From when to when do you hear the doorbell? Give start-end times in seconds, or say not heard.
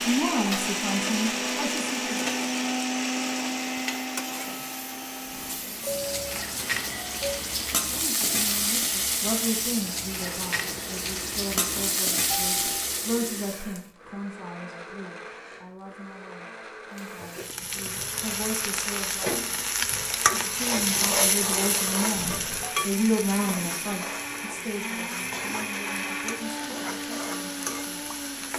5.8-7.5, 12.3-12.9, 22.1-22.8.